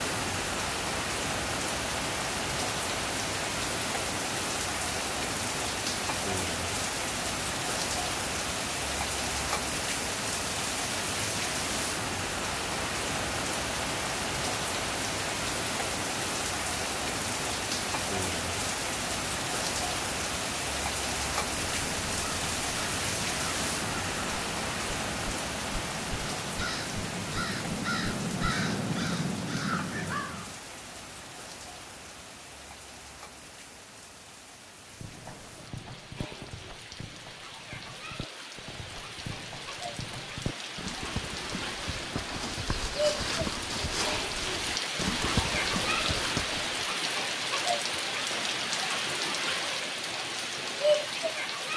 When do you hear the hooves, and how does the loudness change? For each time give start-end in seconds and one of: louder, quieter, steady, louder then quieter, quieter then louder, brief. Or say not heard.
34.9-46.9 louder.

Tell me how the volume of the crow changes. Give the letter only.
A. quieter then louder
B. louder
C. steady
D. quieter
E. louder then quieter
B.